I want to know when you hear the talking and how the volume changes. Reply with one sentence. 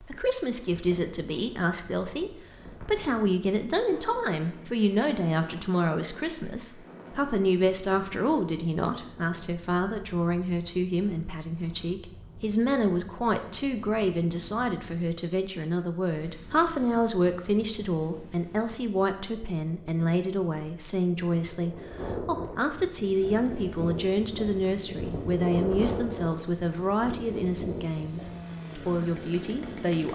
You can hear the talking from 0.0 to 30.1 s, at a steady volume.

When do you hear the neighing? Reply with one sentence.
You can't hear the neighing here.